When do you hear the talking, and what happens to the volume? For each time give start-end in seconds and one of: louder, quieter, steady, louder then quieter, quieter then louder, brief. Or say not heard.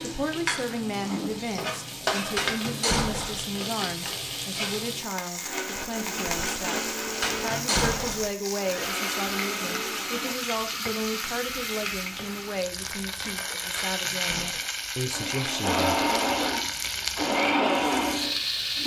0.0-16.1 steady.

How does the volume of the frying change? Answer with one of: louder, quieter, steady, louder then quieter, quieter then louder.
steady.